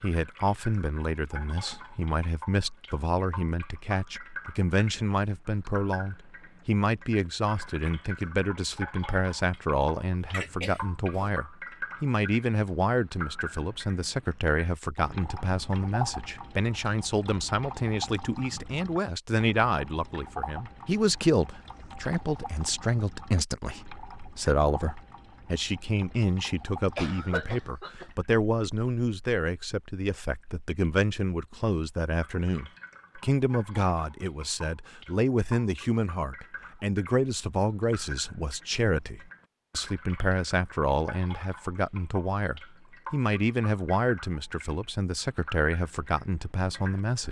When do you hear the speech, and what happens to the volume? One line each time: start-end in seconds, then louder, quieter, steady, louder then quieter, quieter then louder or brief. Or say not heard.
0.0-47.2 steady.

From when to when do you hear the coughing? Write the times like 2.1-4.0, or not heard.
10.3-11.3, 26.9-28.1.